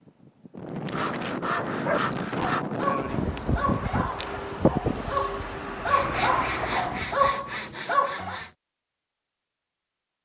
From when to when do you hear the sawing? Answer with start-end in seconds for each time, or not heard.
0.9-2.6, 5.8-8.6.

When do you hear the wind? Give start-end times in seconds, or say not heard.
0.0-7.5.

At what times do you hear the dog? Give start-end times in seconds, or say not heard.
1.4-8.4.